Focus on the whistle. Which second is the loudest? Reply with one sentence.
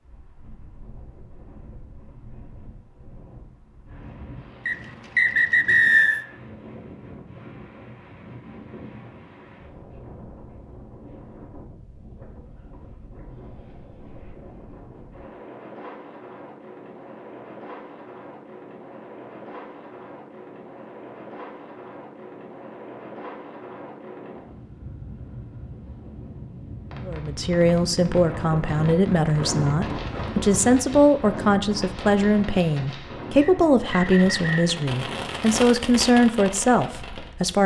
The volume of the whistle peaks at 6 seconds.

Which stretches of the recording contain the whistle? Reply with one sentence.
You can hear the whistle from 4.7 to 6.2 s and from 33.4 to 34.8 s.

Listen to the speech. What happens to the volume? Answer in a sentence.
The loudness of the speech stays about the same.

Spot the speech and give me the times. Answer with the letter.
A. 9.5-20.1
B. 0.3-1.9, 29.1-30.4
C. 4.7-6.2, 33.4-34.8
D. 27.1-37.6
D.